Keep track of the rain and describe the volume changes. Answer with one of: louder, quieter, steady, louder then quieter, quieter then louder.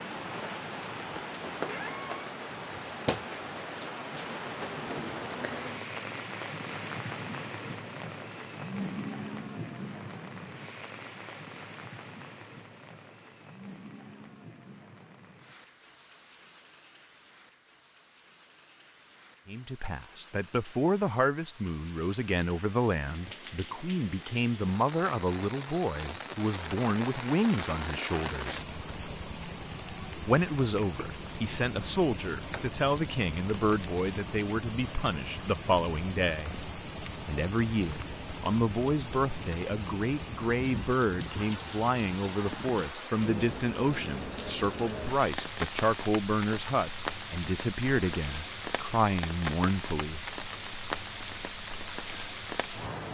quieter then louder.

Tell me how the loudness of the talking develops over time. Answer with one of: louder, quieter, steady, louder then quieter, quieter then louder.
steady.